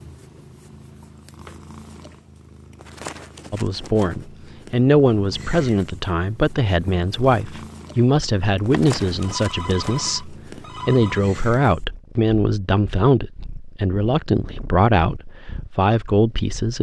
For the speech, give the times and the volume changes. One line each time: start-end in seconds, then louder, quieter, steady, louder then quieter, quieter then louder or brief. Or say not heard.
3.5-16.7 steady.